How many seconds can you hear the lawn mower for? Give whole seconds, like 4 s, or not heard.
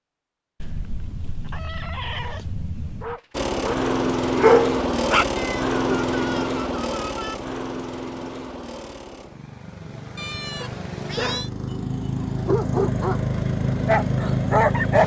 12 s.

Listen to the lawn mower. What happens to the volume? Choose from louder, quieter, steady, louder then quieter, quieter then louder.
quieter then louder.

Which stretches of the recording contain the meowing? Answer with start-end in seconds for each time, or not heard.
0.6-3.2, 5.3-7.3, 10.2-11.5.